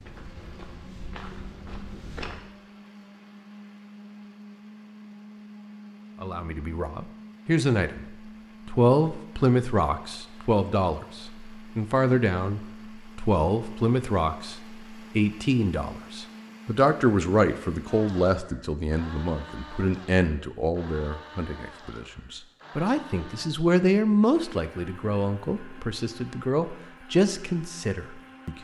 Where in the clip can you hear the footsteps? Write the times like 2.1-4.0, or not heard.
0.0-2.5.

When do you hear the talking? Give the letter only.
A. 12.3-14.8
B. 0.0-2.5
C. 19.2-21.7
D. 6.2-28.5
D.